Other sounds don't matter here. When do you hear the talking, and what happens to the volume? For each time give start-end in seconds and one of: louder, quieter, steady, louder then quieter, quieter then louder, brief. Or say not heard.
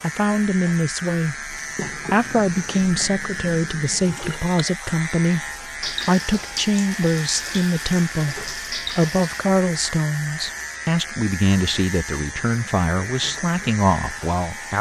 0.0-14.7 steady.